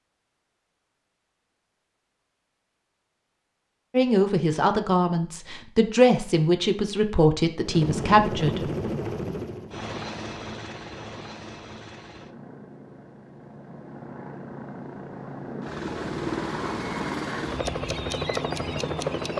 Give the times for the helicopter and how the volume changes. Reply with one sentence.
The helicopter can be heard from 7.6 to 19.3 s, getting quieter then louder.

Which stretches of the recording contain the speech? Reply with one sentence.
You can hear the speech from 3.9 to 8.7 s.